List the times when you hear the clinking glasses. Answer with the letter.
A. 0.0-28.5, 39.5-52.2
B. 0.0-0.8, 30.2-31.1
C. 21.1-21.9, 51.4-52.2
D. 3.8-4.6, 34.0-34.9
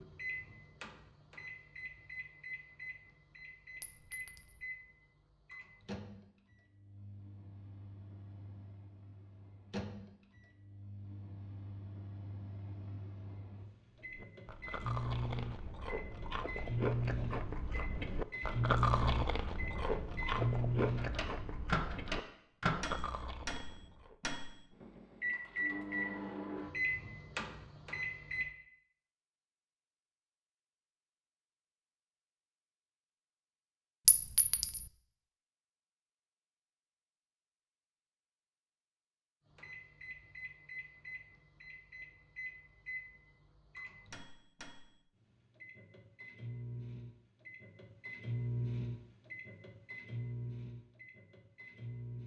D.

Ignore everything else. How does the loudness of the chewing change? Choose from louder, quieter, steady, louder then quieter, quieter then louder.
louder then quieter.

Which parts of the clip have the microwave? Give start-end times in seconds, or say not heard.
0.0-28.5, 39.5-52.2.